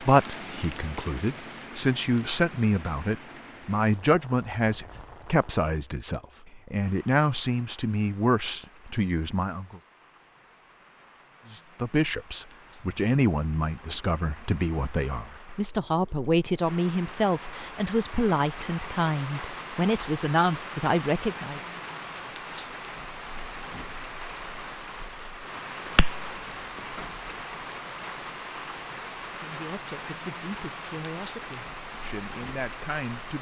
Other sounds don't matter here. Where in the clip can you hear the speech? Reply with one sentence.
You can hear the speech from 0.0 to 9.8 s, from 11.5 to 21.6 s and from 29.4 to 33.3 s.